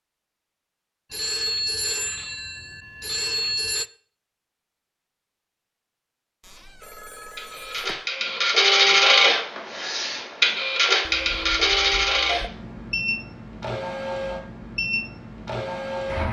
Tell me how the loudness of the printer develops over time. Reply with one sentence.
The loudness of the printer goes down.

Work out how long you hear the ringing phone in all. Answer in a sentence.
The ringing phone can be heard for 6 seconds in total.